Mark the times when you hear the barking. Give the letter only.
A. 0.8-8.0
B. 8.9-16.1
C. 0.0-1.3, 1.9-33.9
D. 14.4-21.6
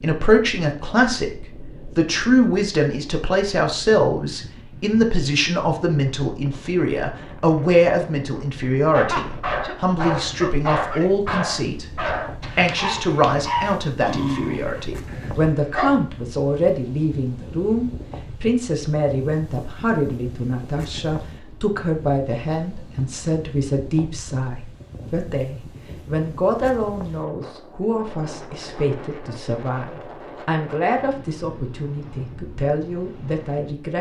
B.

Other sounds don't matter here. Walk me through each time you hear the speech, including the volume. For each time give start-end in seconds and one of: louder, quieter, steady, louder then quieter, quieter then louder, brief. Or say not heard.
0.0-1.3 brief
1.9-33.9 quieter.